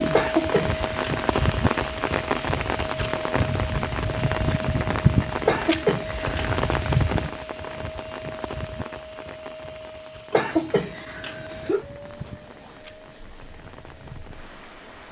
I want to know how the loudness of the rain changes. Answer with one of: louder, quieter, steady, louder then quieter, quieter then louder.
quieter.